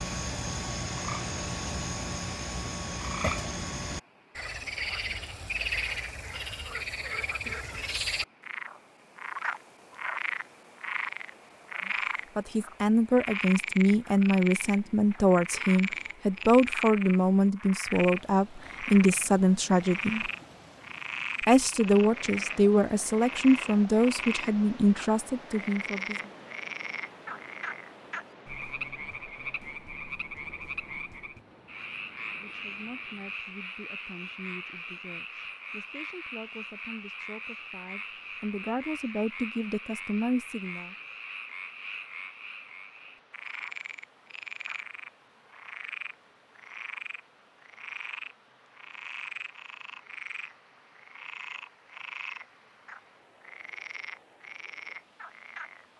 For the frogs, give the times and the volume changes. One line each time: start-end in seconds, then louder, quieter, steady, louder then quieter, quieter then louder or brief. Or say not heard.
0.0-55.9 quieter.